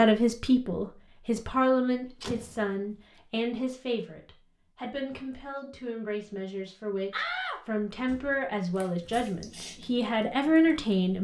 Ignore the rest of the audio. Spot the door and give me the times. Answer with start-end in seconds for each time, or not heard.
1.6-2.8, 7.1-8.8.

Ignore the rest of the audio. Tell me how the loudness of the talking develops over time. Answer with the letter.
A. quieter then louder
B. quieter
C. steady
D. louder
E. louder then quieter
A.